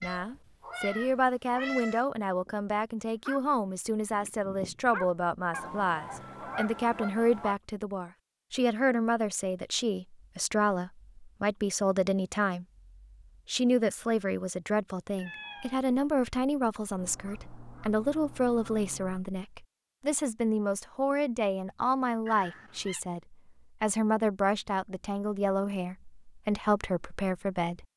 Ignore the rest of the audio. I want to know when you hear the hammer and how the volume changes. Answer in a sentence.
You can't hear the hammer here.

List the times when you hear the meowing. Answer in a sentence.
You can hear the meowing from 0.0 to 2.0 s, from 15.2 to 15.8 s and from 22.2 to 23.0 s.